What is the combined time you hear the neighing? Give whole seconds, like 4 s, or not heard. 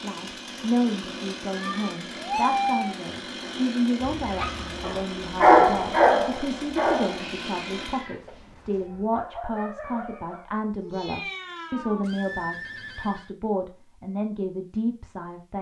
2 s.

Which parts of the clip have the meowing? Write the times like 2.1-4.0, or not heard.
1.5-3.0, 7.2-8.8, 10.8-12.1.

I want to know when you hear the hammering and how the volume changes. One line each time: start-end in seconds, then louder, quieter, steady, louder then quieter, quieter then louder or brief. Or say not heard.
not heard.